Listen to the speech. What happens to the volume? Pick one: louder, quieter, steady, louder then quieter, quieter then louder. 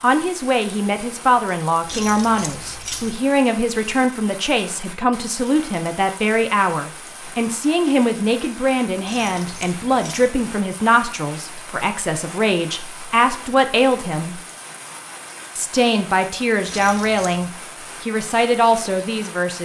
steady.